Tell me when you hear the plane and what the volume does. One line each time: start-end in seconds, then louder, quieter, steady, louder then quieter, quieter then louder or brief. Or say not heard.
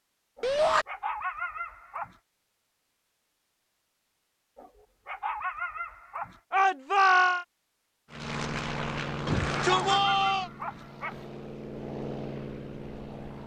8.1-13.4 quieter then louder.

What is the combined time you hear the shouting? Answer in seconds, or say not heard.
3 s.